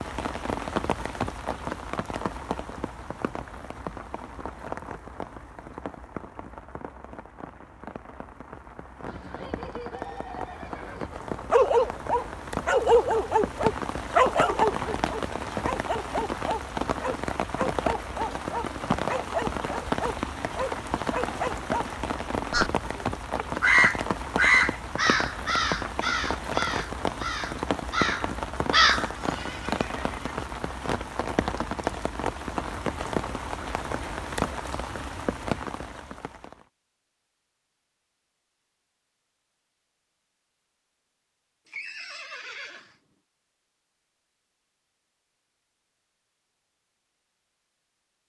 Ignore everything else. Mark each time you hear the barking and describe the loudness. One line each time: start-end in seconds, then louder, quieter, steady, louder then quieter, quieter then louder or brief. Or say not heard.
11.5-21.9 quieter.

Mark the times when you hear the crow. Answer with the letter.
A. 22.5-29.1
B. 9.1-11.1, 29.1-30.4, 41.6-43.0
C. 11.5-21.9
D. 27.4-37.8
A.